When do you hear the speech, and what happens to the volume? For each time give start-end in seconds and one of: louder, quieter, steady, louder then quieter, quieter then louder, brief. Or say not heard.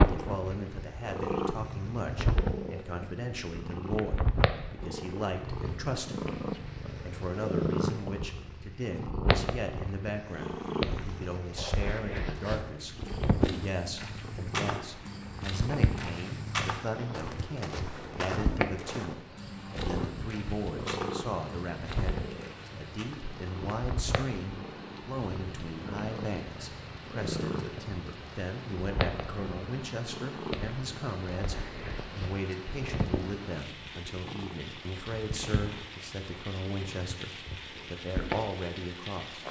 0.1-39.4 steady.